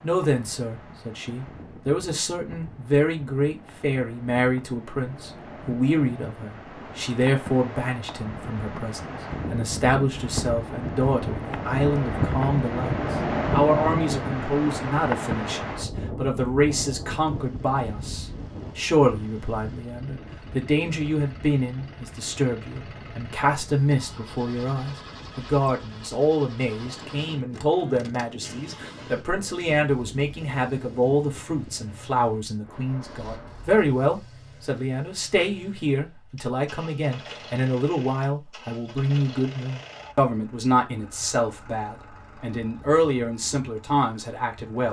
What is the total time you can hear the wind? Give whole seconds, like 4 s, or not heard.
34 s.